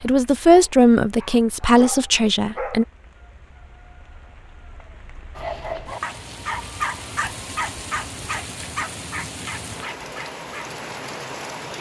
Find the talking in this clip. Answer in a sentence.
The talking can be heard from 0.0 to 2.9 s.